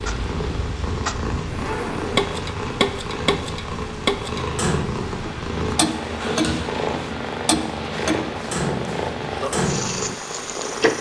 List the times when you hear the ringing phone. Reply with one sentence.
You can't hear the ringing phone here.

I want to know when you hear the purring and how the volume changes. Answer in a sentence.
The purring can be heard from 0.0 to 10.9 s, at a steady volume.